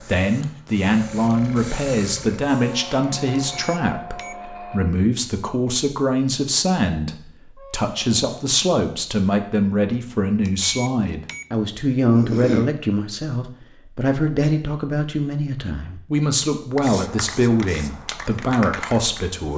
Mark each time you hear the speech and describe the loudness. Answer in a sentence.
The speech can be heard from 0.0 to 19.5 s, at a steady volume.